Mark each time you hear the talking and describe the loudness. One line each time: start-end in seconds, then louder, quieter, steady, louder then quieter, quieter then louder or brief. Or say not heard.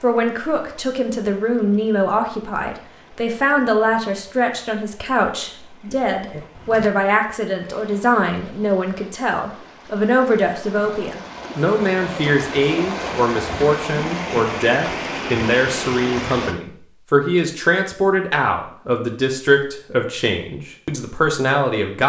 0.0-22.0 steady.